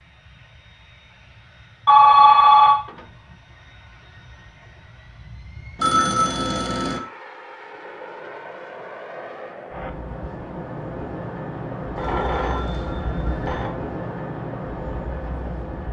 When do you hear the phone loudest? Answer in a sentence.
The volume of the phone peaks at 2 seconds.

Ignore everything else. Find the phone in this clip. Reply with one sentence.
You can hear the phone from 1.9 to 2.8 s, from 5.8 to 7.0 s and from 11.9 to 13.7 s.